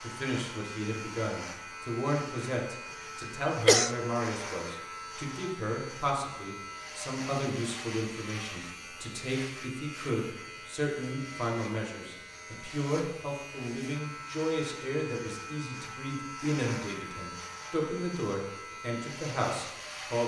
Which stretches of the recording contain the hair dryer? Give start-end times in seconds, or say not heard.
not heard.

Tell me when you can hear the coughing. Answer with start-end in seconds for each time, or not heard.
3.2-3.9.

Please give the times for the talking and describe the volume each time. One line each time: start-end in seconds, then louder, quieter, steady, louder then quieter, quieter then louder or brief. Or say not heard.
0.0-20.2 steady.